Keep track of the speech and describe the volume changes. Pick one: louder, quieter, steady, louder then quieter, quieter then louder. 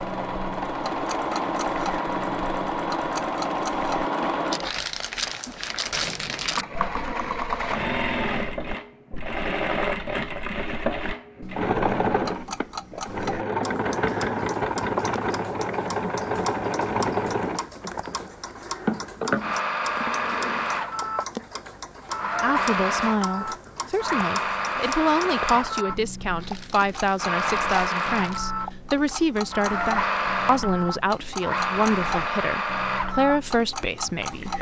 steady.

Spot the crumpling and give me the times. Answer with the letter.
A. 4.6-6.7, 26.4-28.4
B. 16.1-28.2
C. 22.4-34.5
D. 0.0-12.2
A.